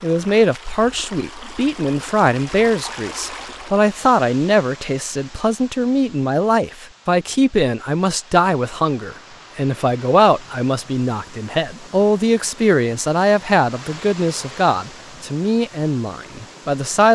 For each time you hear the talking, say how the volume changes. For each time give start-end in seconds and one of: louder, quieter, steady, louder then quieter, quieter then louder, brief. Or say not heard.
0.0-17.1 steady.